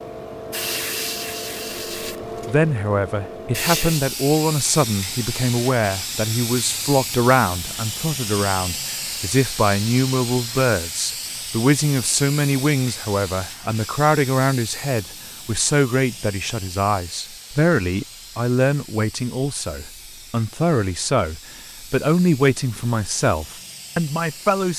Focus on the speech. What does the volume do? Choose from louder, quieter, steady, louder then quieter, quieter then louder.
steady.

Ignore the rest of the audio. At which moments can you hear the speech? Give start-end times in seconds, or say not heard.
2.5-24.7.